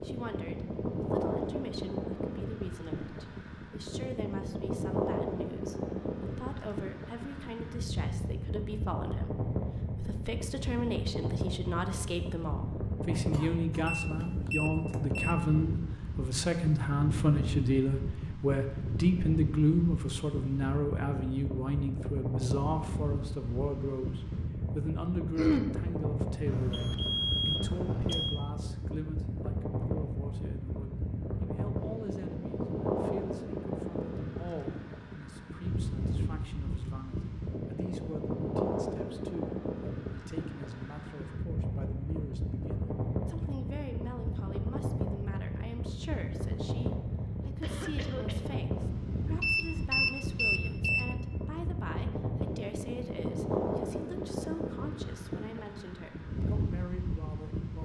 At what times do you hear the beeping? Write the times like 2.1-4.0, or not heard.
13.8-15.3, 26.4-28.4, 49.4-51.1.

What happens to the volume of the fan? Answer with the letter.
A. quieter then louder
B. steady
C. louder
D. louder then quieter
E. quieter
B.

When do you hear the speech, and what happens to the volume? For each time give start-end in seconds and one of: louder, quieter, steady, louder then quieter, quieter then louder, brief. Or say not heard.
0.0-57.7 louder then quieter.